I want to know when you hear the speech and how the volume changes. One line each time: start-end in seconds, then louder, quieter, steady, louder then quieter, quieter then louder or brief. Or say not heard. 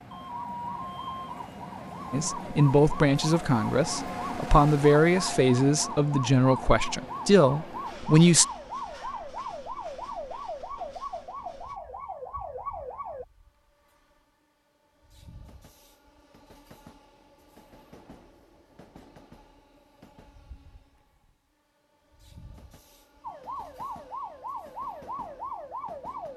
2.1-8.4 steady.